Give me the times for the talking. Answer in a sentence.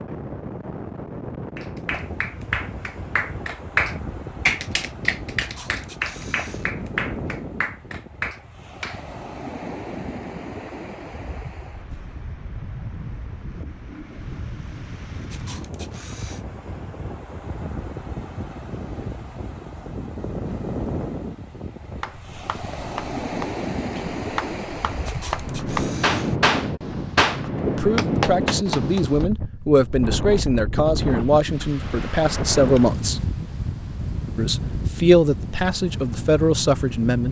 You can hear the talking from 27.6 to 33.2 s and from 34.4 to 37.2 s.